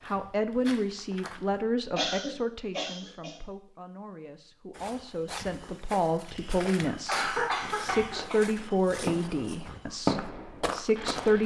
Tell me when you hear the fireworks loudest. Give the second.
10 s.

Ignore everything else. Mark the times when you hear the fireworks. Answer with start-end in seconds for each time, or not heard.
7.3-11.4.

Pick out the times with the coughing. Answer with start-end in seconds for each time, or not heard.
1.9-3.4, 6.3-8.4.